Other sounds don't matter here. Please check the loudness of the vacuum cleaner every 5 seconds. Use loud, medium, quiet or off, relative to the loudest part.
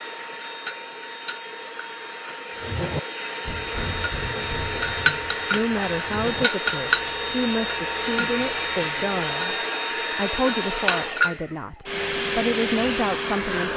medium, loud, loud.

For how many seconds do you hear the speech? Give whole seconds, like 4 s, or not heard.
8 s.